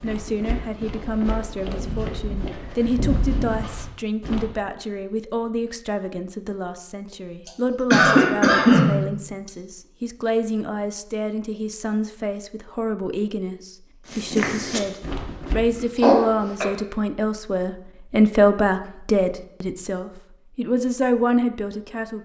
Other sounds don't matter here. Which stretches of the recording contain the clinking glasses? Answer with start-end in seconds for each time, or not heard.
not heard.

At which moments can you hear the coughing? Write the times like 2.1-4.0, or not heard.
7.5-9.5, 15.7-16.7.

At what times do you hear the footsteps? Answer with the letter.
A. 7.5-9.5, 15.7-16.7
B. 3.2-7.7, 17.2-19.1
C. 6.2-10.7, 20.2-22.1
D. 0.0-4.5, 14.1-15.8
D.